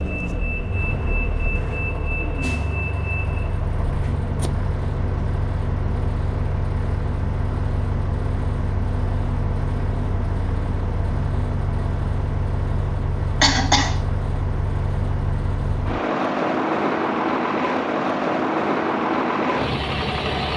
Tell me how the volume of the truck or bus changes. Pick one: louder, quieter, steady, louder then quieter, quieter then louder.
louder.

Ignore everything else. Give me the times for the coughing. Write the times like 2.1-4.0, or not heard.
13.4-13.9.